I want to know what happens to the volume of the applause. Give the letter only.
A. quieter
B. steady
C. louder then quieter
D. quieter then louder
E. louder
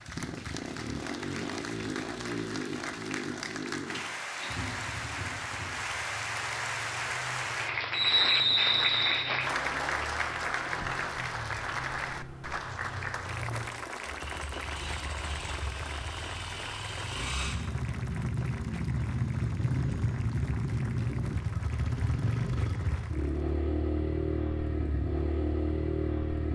C.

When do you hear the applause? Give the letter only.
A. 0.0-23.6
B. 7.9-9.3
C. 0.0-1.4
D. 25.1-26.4
A.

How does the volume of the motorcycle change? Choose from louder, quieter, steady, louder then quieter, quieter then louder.
quieter then louder.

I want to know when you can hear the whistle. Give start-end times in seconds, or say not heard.
7.9-9.3.